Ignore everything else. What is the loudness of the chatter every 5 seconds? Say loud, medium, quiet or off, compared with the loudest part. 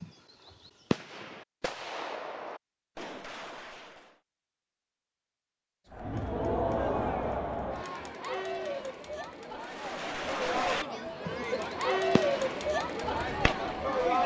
off, loud, loud.